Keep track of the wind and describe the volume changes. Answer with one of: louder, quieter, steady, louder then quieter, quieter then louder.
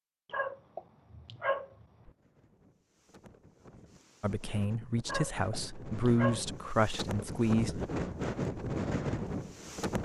louder.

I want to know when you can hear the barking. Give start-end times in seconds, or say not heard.
0.2-2.1, 5.0-6.5.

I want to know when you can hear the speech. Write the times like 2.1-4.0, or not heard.
4.2-7.8.